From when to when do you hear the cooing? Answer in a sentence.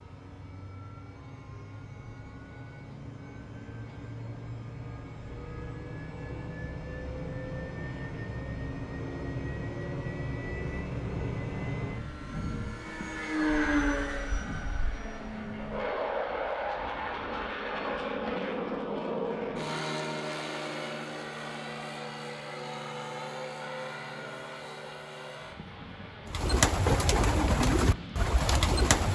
You can hear the cooing from 26.2 to 29.0 s.